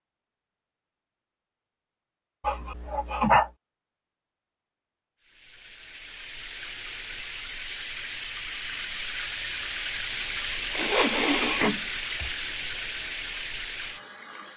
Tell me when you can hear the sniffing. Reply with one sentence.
The sniffing can be heard from 2.4 to 3.5 s and from 10.7 to 12.3 s.